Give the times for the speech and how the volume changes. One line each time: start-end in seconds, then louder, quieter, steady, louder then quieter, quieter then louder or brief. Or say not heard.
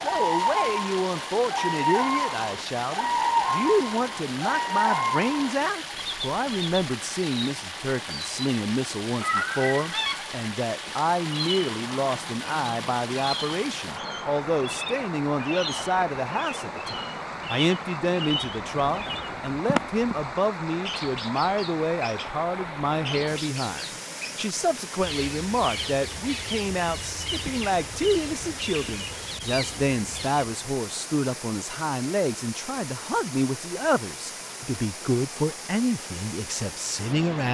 0.0-37.5 steady.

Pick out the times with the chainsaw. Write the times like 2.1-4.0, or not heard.
not heard.